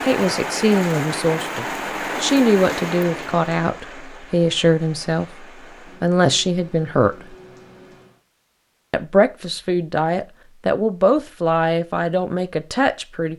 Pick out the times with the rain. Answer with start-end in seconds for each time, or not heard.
0.0-8.2.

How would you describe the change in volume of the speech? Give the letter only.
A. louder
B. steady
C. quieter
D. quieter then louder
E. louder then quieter
B.